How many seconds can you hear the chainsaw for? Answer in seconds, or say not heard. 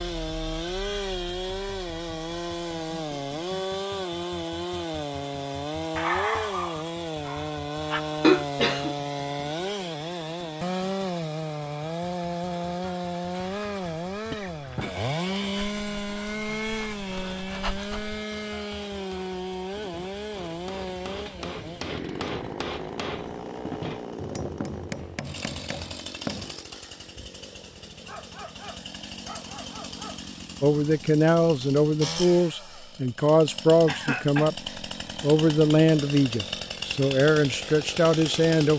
39 s.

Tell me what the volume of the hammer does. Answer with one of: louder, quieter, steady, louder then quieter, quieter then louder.
louder.